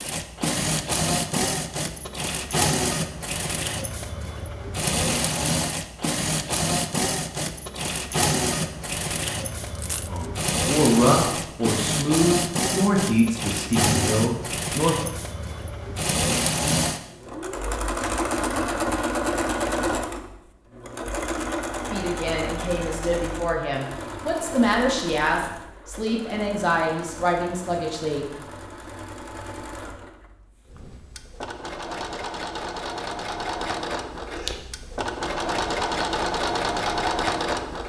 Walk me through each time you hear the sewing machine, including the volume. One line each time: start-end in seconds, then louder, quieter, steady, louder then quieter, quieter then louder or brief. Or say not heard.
0.0-37.8 quieter then louder.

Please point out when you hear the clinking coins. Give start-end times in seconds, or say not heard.
9.6-10.3.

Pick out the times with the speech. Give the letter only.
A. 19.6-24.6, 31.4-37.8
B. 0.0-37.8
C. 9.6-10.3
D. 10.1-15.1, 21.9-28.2
D.